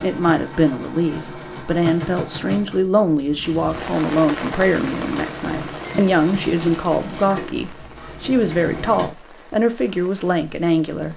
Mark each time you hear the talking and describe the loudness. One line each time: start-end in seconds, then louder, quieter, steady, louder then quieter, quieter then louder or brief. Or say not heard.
0.0-11.1 steady.